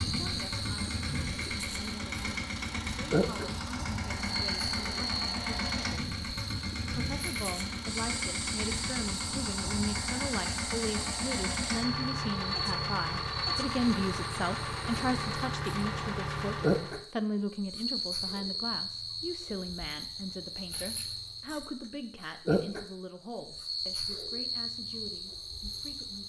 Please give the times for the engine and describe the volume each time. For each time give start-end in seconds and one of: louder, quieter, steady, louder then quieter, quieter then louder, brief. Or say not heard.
0.0-17.0 steady.